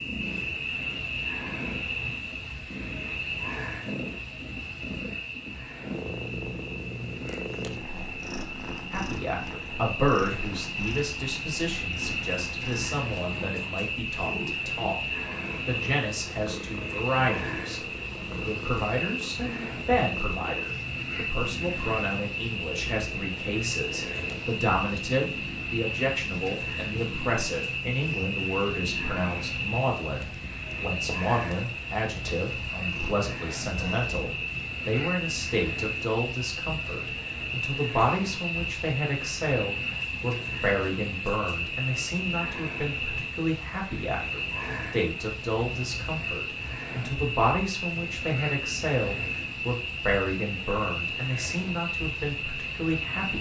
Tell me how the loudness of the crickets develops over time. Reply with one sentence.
The volume of the crickets stays about the same.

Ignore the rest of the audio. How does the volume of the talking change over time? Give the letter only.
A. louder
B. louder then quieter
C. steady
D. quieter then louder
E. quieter
C.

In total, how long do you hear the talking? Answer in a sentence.
The talking can be heard for 44 seconds in total.